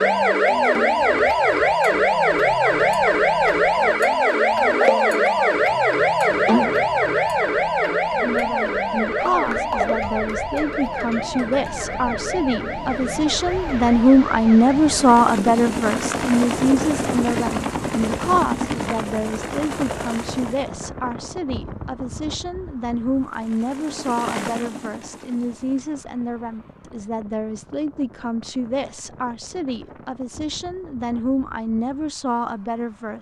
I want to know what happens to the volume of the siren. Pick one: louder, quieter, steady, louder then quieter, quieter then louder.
quieter.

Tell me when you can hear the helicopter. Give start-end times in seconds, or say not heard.
14.9-20.7, 23.1-25.9.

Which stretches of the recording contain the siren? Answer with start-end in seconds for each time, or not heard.
0.0-15.2.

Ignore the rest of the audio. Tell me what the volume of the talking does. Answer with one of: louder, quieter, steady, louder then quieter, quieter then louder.
louder then quieter.